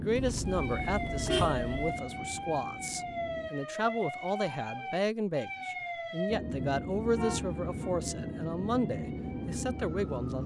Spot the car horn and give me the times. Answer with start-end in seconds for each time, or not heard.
0.1-1.9, 7.2-8.0.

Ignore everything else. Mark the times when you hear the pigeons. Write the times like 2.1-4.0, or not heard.
not heard.